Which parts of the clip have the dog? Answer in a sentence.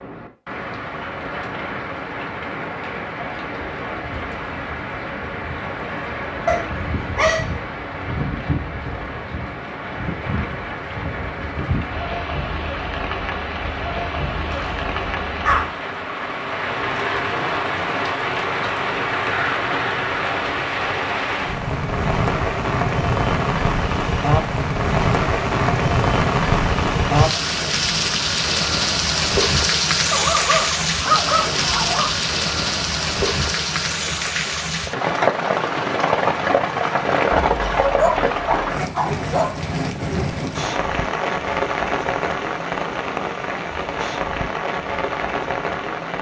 The dog can be heard from 6.5 to 7.5 s, from 14.5 to 15.8 s, from 30.1 to 32.1 s and from 37.8 to 39.6 s.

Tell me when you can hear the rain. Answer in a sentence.
You can hear the rain from 0.0 to 46.1 s.